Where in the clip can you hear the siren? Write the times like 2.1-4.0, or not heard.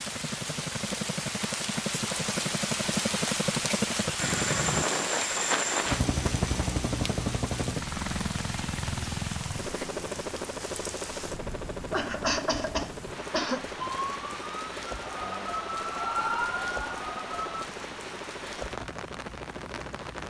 13.8-17.6.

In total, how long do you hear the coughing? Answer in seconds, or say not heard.
2 s.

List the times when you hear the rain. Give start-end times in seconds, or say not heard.
0.0-20.2.